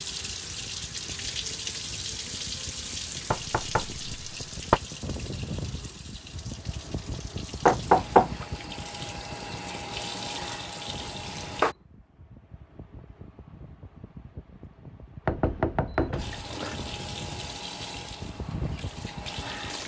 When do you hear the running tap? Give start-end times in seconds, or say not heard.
0.0-11.8, 16.1-19.8.